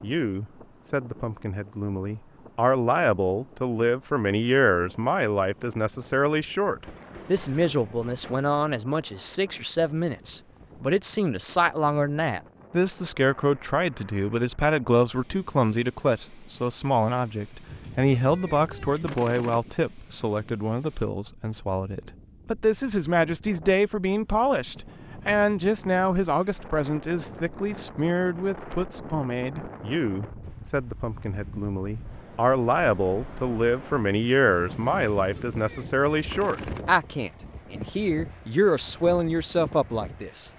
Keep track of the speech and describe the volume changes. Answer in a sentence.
The loudness of the speech stays about the same.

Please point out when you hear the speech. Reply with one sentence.
The speech can be heard from 0.0 to 40.5 s.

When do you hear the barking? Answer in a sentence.
You can't hear the barking here.